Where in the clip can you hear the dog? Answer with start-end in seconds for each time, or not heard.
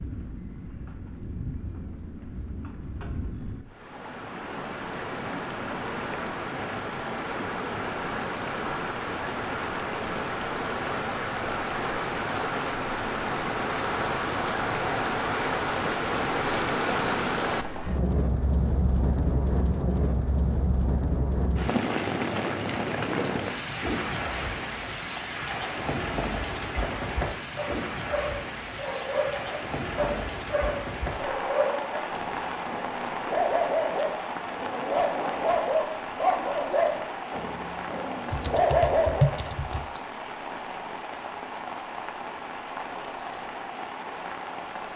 27.6-39.4.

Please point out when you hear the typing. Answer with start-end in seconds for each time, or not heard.
38.3-40.0.